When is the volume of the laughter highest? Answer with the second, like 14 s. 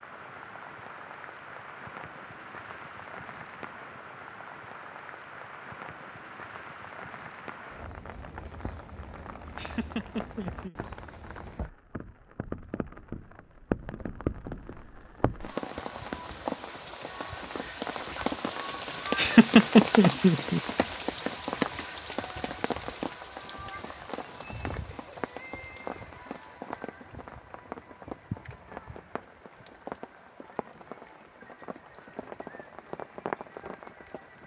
20 s.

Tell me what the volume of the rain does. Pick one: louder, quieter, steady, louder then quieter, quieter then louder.
louder then quieter.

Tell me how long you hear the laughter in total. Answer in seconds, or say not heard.
3 s.